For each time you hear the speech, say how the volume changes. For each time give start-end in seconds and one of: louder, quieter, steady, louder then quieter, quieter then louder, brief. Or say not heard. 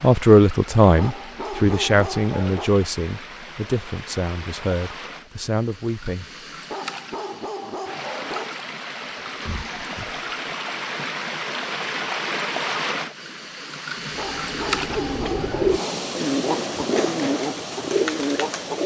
0.0-6.2 quieter.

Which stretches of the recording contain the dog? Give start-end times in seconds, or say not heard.
0.9-2.7, 6.7-8.6, 14.2-16.1.